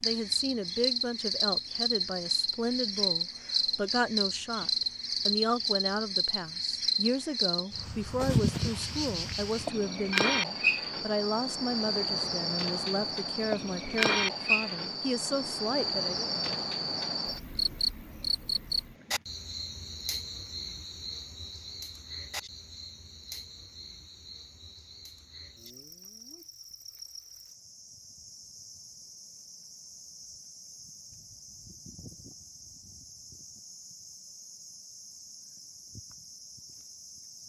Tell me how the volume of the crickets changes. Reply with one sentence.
The loudness of the crickets goes down.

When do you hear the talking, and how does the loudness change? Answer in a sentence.
You can hear the talking from 0.0 to 16.3 s, at a steady volume.